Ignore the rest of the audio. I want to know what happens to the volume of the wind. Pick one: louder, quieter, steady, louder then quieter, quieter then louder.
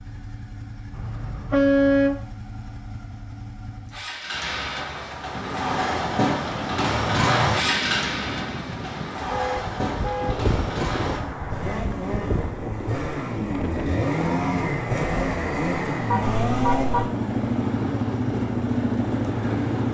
steady.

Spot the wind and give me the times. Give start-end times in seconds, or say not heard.
5.3-19.9.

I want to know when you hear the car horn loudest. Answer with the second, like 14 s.
2 s.